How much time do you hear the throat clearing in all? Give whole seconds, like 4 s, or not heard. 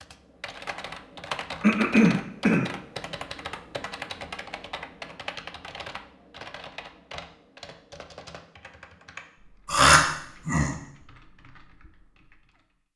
2 s.